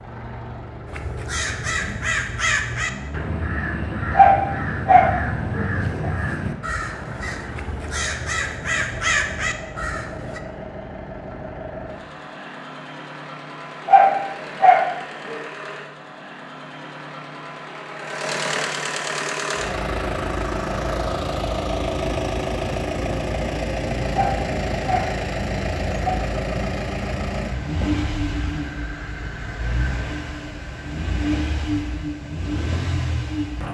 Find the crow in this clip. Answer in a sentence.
You can hear the crow from 0.8 to 10.4 s.